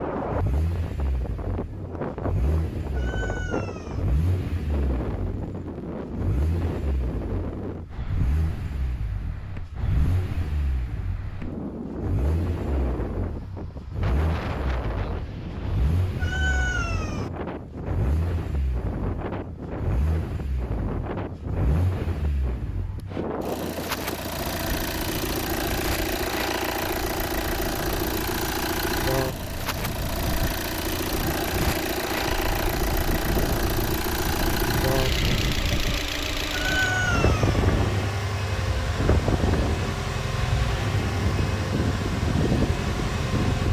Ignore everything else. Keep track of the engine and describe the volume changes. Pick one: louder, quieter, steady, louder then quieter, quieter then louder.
louder.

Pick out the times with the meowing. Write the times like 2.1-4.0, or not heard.
2.9-4.0, 16.2-17.3, 36.5-37.6.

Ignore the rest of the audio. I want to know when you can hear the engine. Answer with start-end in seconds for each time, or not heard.
0.0-43.6.